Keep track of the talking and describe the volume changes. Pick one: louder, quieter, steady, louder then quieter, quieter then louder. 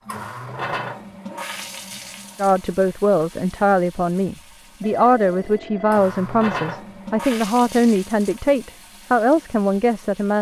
steady.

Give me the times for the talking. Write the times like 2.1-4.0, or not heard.
2.4-10.3.